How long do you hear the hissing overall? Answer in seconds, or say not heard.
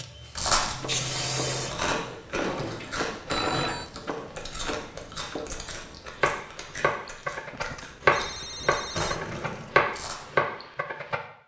2 s.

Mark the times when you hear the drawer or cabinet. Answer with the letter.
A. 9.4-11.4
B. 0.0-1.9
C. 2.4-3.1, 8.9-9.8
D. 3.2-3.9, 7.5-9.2
C.